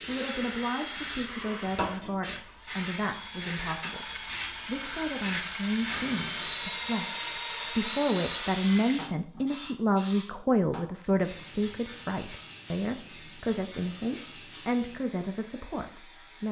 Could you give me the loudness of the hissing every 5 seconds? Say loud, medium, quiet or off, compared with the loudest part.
loud, loud, medium, quiet.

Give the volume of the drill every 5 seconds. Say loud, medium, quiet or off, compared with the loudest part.
medium, loud, off, off.